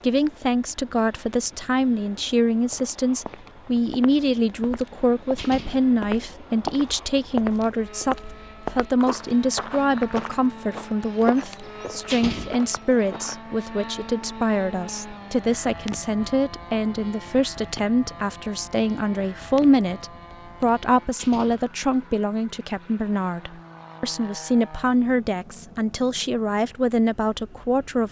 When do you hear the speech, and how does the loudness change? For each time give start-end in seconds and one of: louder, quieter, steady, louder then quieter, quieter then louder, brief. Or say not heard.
0.0-28.0 steady.